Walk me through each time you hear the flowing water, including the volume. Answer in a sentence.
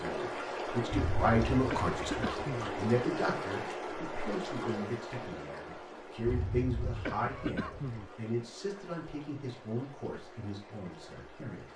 You can hear the flowing water from 0.0 to 11.7 s, getting quieter.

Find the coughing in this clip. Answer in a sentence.
The coughing can be heard from 0.9 to 2.8 s and from 6.2 to 8.1 s.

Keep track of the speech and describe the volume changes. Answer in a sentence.
The loudness of the speech goes down.